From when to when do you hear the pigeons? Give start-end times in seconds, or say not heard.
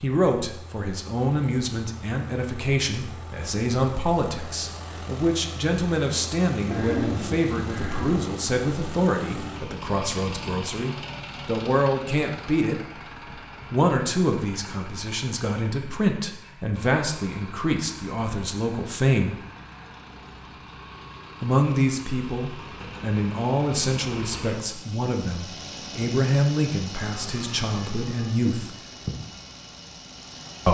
6.7-8.2.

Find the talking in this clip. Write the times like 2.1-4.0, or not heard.
0.0-12.8, 13.7-19.4, 21.4-28.7.